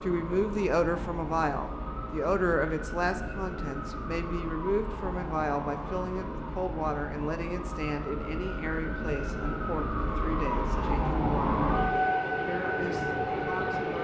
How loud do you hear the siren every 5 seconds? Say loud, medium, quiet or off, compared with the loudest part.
medium, medium, loud.